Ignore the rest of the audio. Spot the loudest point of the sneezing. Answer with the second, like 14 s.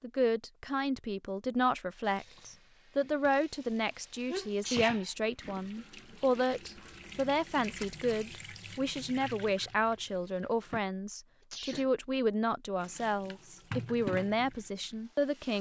5 s.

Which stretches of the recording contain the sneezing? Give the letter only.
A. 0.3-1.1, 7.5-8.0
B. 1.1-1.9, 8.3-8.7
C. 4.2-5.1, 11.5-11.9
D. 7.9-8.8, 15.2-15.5
C.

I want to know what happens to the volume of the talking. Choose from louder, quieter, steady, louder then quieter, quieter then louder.
steady.